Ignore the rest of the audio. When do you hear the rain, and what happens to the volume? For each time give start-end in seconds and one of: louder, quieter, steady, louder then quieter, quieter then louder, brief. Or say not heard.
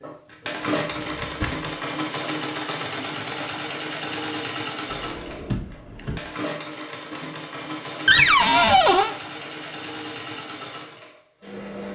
not heard.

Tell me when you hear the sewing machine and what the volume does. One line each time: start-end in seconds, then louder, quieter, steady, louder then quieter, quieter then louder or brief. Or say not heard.
0.0-11.9 quieter.